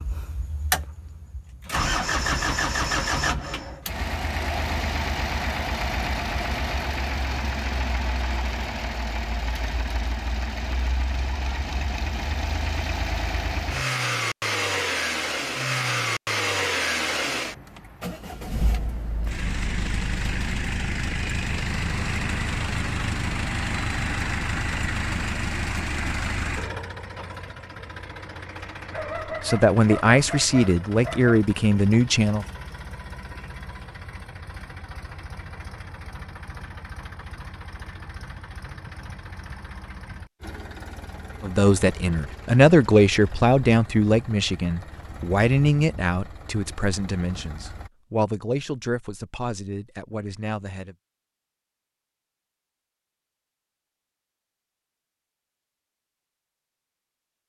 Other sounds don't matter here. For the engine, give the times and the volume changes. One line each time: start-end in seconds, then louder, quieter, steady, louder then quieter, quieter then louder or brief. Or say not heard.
0.0-47.9 quieter.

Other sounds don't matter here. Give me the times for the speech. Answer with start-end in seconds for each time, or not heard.
29.4-32.5, 41.4-51.0.